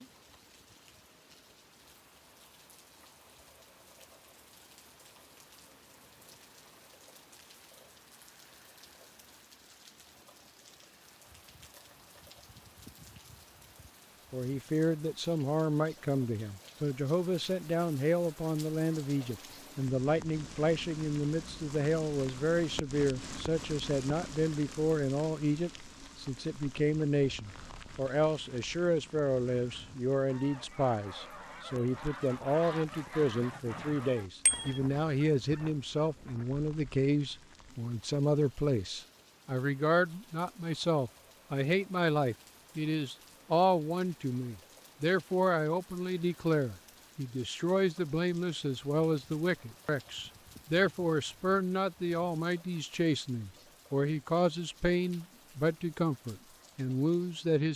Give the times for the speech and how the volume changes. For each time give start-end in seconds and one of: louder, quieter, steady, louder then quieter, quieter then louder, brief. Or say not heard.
14.3-57.7 steady.